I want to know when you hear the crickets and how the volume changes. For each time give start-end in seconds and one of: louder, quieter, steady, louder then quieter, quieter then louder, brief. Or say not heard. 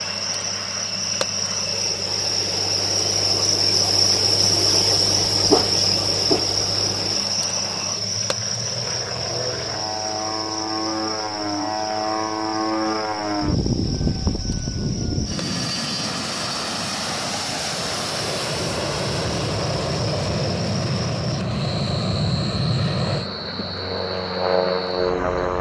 0.0-25.5 quieter.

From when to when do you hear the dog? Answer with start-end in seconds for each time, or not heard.
5.4-6.6.